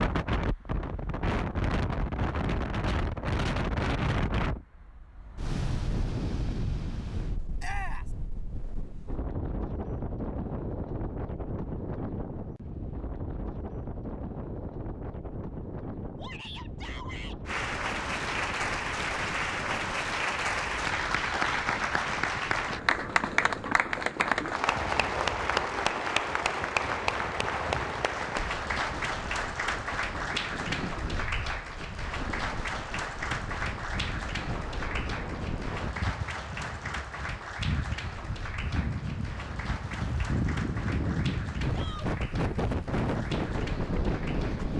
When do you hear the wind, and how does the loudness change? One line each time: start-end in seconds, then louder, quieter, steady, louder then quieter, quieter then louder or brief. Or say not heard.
0.0-44.7 quieter then louder.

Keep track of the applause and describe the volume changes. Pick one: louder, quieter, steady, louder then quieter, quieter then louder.
quieter.